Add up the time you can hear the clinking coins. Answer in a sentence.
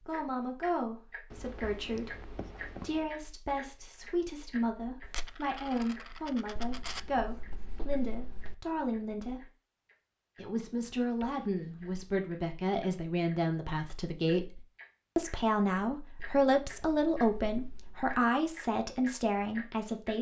The clinking coins can be heard for 2 seconds in total.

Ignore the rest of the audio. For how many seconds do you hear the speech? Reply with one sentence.
You can hear the speech for 19 seconds altogether.